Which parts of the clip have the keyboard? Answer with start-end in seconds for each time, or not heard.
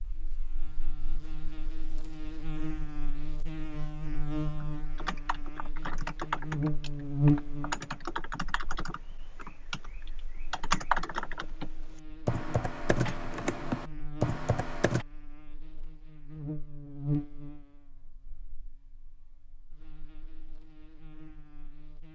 4.6-15.1.